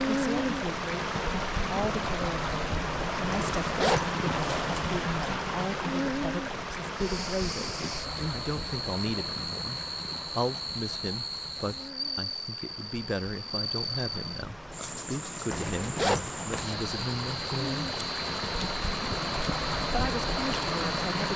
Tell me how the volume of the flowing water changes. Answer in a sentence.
The loudness of the flowing water goes down, then up.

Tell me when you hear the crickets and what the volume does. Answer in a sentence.
The crickets can be heard from 6.9 to 21.3 s, at a steady volume.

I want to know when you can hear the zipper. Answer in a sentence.
The zipper can be heard from 3.3 to 5.0 s and from 15.5 to 16.8 s.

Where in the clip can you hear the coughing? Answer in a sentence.
You can hear the coughing from 7.3 to 8.4 s.